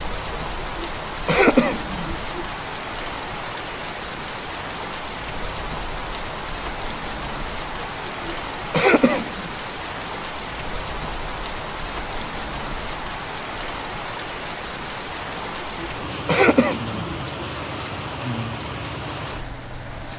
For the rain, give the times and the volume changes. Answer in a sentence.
You can hear the rain from 0.0 to 20.1 s, at a steady volume.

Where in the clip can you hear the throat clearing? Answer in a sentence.
You can hear the throat clearing from 0.3 to 2.5 s, from 7.8 to 9.5 s and from 15.3 to 17.2 s.